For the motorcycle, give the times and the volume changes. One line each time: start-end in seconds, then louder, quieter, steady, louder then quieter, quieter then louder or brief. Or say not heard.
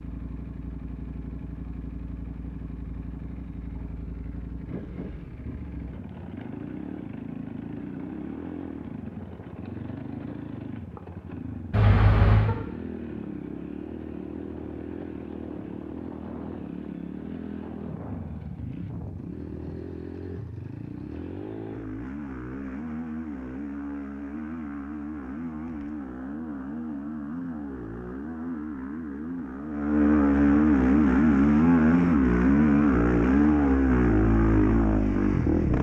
0.0-35.7 louder.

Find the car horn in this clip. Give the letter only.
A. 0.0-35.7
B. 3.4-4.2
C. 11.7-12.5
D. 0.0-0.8
C.